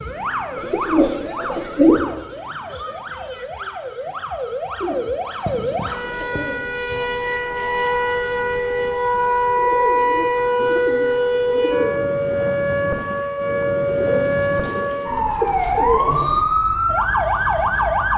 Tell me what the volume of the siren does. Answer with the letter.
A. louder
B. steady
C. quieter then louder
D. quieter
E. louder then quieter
A.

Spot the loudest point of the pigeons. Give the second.
2 s.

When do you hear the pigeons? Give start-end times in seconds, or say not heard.
0.6-2.1, 4.8-6.6, 9.6-12.1, 13.8-16.4.